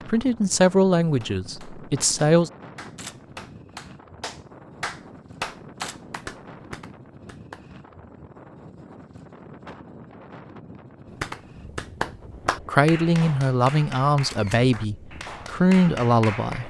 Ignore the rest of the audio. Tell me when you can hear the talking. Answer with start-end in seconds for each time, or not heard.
0.1-2.5, 12.7-16.6.